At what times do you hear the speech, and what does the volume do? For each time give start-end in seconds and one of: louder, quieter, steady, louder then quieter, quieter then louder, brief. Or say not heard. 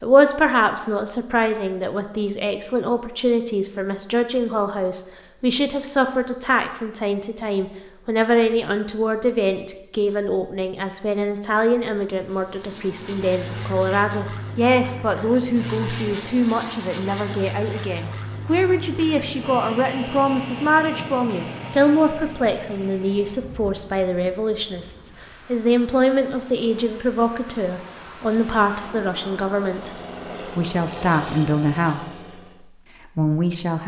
0.0-33.8 steady.